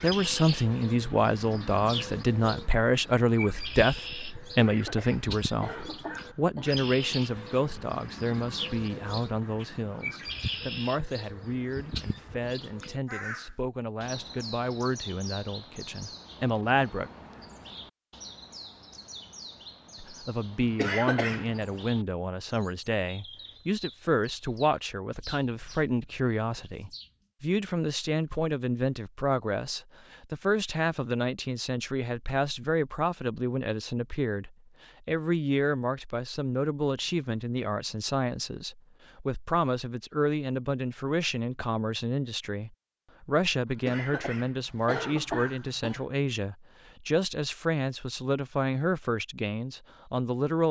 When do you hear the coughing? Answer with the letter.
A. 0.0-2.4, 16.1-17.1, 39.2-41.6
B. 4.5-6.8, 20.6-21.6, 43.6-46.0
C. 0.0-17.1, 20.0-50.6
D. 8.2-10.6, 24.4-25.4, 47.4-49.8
B.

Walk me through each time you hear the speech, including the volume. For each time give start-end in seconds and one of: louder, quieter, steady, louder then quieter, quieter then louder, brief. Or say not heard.
0.0-17.1 quieter
20.0-50.6 steady.